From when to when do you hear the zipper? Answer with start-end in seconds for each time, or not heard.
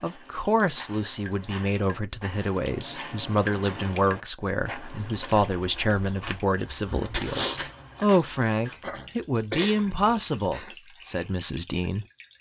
not heard.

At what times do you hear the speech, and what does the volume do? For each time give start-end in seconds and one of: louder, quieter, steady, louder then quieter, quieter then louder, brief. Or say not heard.
0.0-12.1 steady.